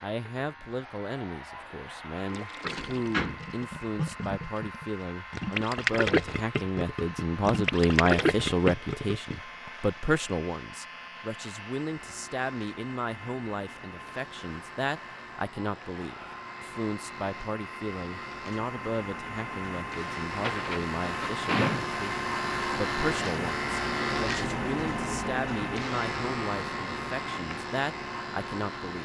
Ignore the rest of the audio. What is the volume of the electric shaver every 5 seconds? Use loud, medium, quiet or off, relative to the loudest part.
quiet, quiet, quiet, quiet, loud, loud.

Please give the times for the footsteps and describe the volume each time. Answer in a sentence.
You can't hear the footsteps here.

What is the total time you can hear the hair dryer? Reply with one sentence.
The hair dryer can be heard for 29 seconds in total.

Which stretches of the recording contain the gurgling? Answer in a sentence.
The gurgling can be heard from 2.2 to 9.7 s.